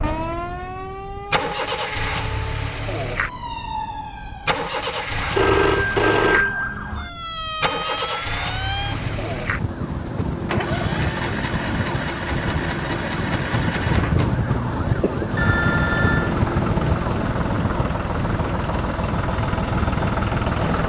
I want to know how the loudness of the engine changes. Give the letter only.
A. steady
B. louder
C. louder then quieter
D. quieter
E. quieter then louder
A.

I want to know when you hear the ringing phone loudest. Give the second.
6 s.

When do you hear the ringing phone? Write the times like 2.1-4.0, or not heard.
5.3-6.8, 15.0-16.4.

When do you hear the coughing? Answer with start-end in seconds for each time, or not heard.
not heard.